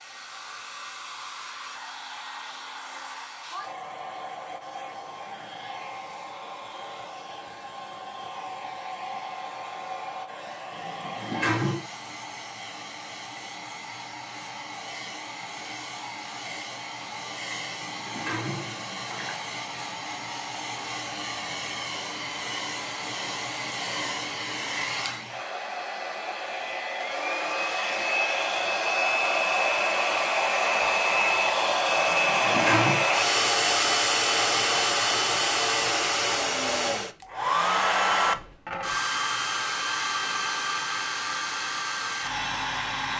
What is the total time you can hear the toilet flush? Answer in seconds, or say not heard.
4 s.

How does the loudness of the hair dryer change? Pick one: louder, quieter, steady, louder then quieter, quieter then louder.
louder.